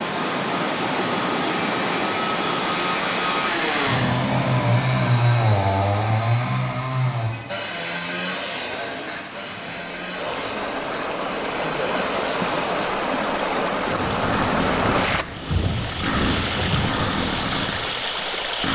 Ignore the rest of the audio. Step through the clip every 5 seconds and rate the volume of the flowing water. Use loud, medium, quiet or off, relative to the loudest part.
loud, quiet, loud, loud.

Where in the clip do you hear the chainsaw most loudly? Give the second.
5 s.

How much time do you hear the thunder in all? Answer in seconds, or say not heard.
3 s.